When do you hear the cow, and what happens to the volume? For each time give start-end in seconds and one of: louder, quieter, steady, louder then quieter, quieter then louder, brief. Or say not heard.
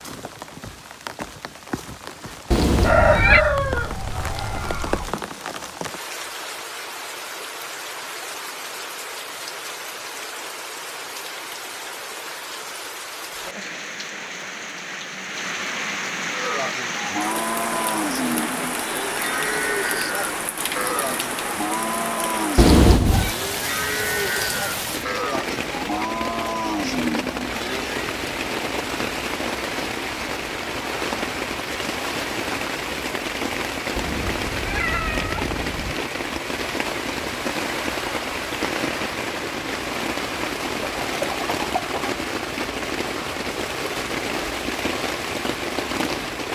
16.3-28.1 steady.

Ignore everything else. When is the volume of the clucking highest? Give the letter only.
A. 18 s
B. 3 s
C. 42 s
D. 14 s
B.